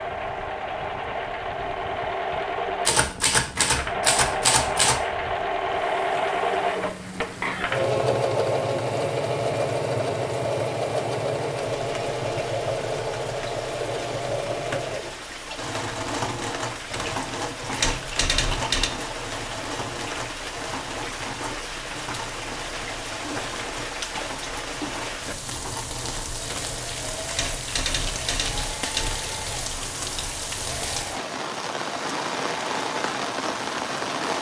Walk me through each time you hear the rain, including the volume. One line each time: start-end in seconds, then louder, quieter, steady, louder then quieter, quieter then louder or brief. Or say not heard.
0.0-34.3 louder.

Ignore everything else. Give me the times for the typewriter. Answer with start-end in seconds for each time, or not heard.
2.9-5.0, 16.9-18.9, 26.4-29.3.